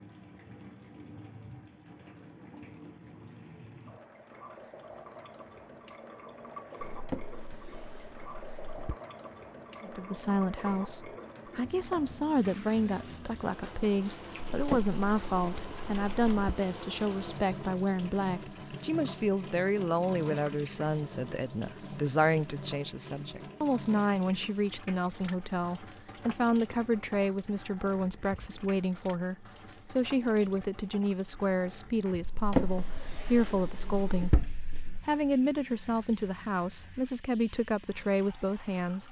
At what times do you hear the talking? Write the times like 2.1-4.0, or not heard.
9.8-39.0.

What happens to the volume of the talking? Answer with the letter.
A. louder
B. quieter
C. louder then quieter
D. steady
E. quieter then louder
D.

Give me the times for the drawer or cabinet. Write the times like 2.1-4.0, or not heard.
6.9-8.9, 14.5-16.6, 32.2-35.0.